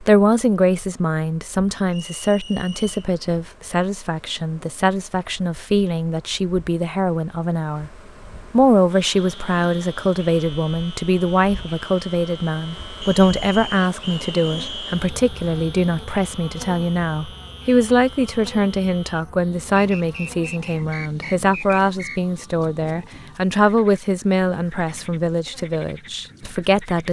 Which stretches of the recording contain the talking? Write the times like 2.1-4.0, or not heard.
0.0-7.9, 8.5-27.0.